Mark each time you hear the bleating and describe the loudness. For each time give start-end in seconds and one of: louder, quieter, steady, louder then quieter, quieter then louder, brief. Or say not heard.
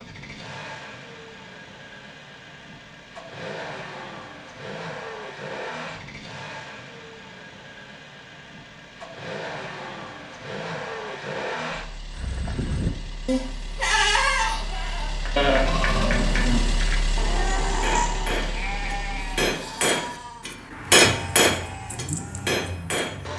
12.2-22.6 quieter.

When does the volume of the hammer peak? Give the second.
21 s.